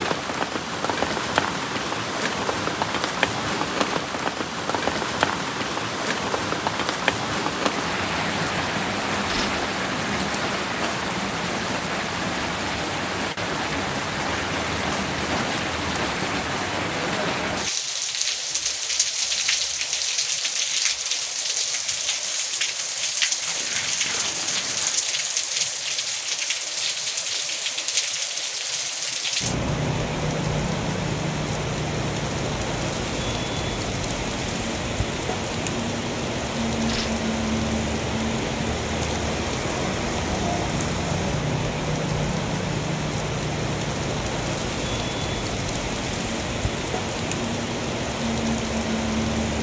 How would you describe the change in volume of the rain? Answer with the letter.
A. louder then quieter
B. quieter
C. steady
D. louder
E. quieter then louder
C.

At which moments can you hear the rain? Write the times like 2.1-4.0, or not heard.
0.0-49.5.